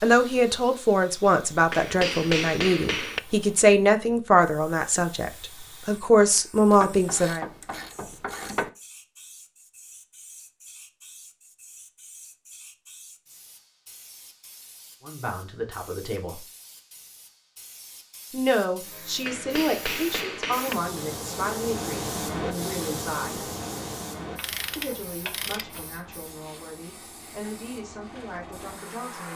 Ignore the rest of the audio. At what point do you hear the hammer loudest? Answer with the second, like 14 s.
2 s.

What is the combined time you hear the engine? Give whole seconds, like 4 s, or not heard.
4 s.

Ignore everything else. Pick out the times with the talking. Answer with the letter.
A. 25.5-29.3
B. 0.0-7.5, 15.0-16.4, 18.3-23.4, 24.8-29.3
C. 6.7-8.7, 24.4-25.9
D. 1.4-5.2
B.